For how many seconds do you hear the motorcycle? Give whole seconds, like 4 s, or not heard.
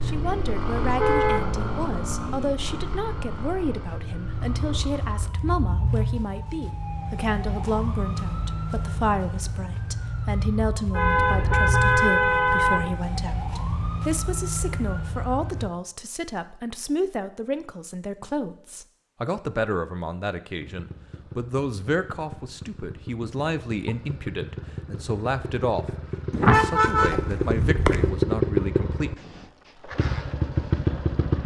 16 s.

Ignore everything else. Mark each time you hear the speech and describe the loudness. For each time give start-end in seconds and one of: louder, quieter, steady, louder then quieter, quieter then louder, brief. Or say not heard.
0.0-29.1 steady.